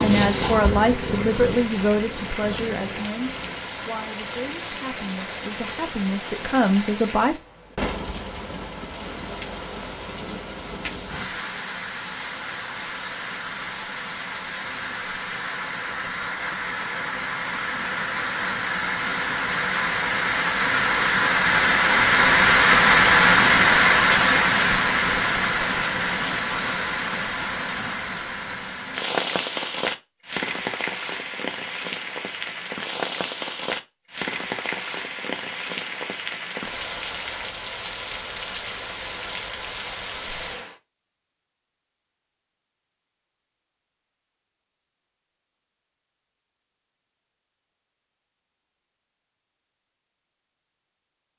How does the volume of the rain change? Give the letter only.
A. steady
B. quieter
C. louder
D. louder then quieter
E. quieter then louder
D.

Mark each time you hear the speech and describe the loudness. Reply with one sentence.
You can hear the speech from 0.0 to 7.3 s, getting quieter then louder.